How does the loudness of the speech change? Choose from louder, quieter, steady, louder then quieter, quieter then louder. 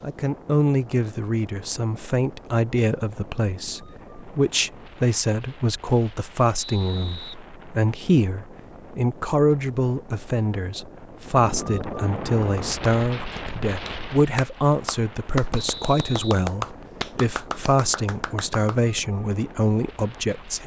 steady.